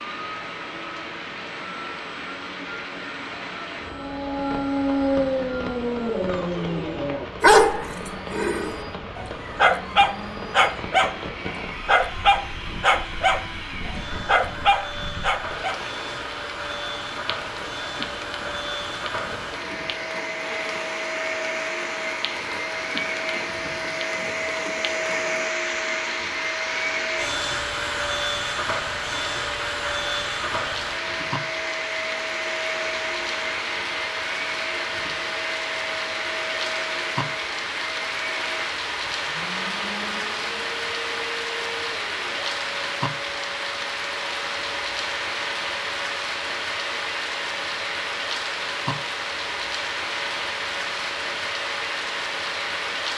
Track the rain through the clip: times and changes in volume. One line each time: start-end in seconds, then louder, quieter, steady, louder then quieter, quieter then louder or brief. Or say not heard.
0.0-53.1 louder.